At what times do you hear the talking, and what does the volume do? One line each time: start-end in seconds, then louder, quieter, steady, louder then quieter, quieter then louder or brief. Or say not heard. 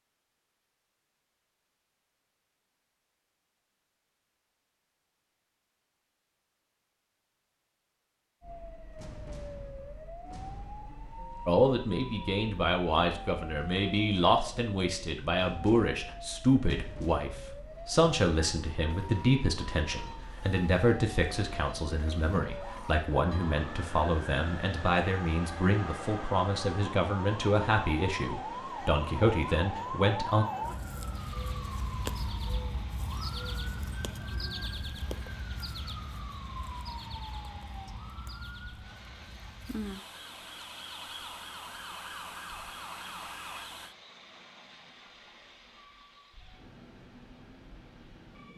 11.4-30.4 steady.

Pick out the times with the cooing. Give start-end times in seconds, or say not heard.
not heard.